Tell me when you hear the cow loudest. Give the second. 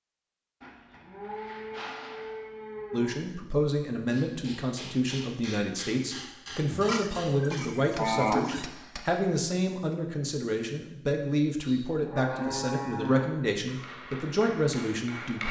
8 s.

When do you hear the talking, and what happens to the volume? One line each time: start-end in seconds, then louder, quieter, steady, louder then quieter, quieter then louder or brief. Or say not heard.
2.9-15.4 steady.